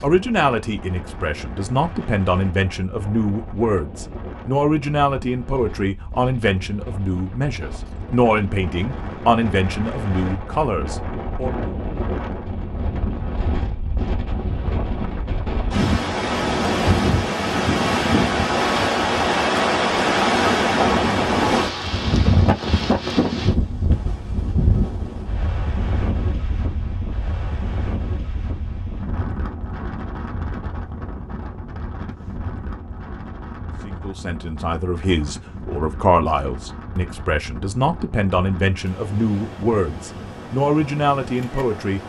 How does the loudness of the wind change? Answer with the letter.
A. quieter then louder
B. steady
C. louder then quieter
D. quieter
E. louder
C.